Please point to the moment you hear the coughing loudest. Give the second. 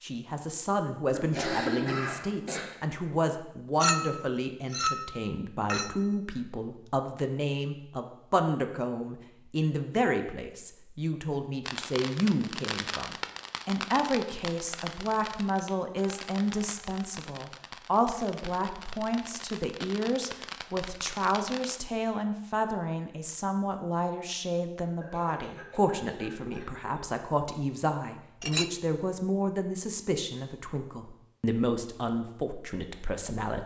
2 s.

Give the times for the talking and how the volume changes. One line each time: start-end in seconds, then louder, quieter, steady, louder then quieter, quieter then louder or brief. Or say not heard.
0.0-33.6 steady.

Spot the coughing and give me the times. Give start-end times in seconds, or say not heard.
1.1-2.6, 25.0-27.0.